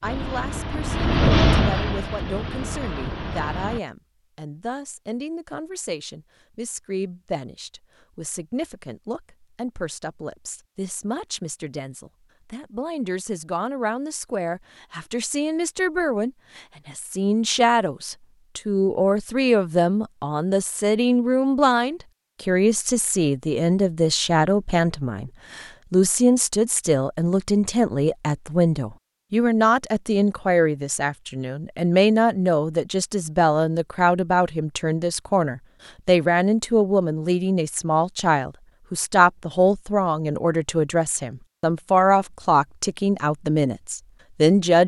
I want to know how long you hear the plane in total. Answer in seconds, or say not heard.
4 s.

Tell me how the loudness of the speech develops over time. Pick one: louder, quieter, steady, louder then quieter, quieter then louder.
louder.